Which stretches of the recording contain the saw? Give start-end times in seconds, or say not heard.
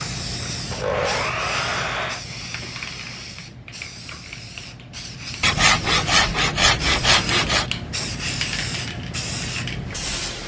0.7-2.2, 5.4-7.7.